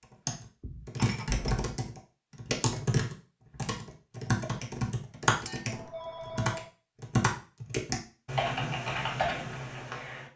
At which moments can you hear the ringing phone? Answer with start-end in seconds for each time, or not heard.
5.7-6.7.